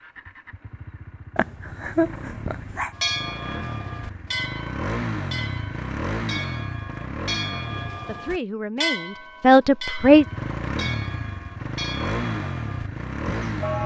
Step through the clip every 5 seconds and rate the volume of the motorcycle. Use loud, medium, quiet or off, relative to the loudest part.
medium, loud, loud.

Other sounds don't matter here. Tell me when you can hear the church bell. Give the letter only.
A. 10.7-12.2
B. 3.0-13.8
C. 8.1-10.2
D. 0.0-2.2
B.